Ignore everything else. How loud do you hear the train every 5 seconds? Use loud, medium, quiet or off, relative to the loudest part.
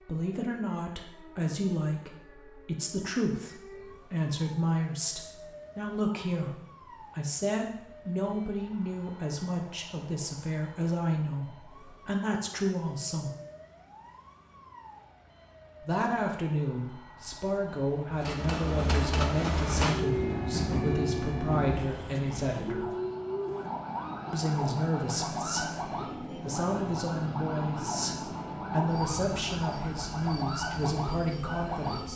off, off, off, loud, loud, medium, quiet.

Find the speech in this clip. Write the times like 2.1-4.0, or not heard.
0.1-13.3, 15.8-22.9, 24.3-32.1.